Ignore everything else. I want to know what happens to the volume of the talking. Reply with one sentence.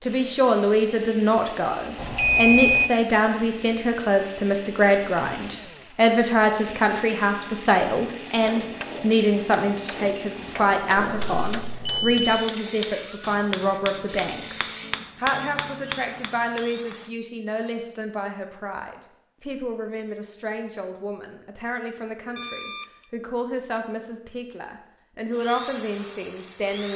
The loudness of the talking goes down.